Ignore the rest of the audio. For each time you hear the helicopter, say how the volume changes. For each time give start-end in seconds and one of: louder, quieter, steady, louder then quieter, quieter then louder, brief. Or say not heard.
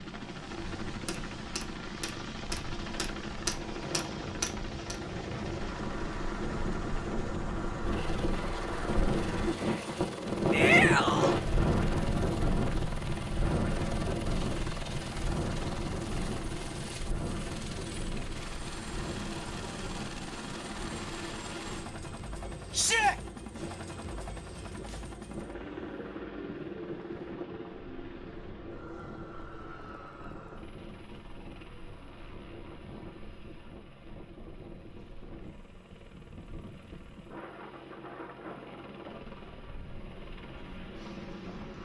0.0-41.7 quieter.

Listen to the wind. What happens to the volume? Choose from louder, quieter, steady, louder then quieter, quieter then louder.
quieter.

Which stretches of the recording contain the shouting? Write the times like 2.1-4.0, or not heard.
10.5-11.3, 22.7-23.1.